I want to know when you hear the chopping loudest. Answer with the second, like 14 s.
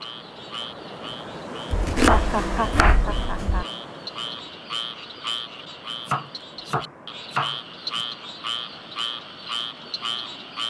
2 s.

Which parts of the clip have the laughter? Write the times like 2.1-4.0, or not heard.
2.1-3.6.